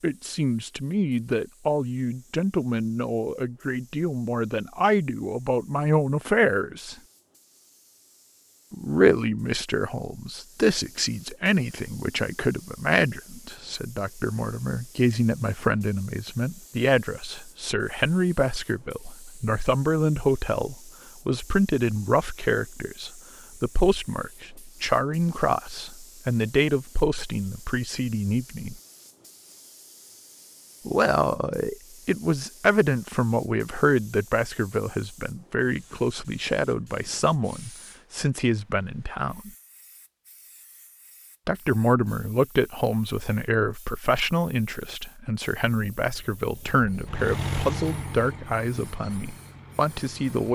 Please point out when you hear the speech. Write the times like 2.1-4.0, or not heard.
0.0-7.0, 8.7-28.8, 30.9-39.5, 41.5-50.5.